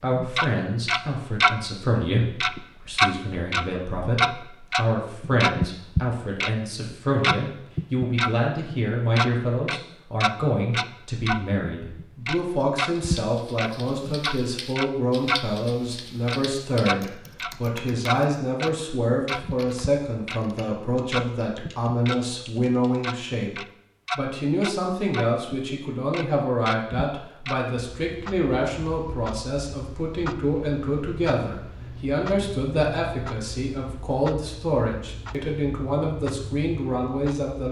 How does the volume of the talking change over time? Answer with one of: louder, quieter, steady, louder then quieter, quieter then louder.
steady.